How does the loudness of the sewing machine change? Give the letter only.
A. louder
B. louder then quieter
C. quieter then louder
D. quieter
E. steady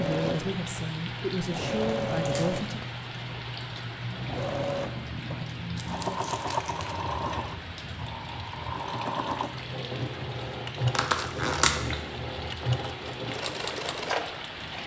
E.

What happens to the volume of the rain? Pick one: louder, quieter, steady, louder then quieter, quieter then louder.
steady.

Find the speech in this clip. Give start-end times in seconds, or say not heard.
0.0-2.9.